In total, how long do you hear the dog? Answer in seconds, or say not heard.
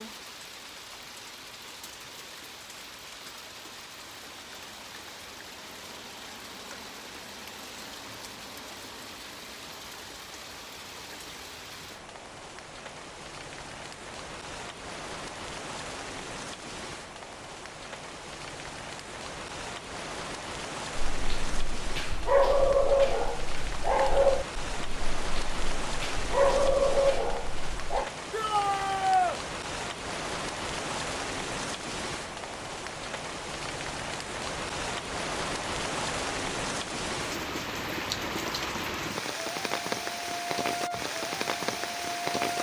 7 s.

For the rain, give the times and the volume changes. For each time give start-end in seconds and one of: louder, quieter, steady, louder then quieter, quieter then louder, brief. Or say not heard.
0.0-42.5 louder.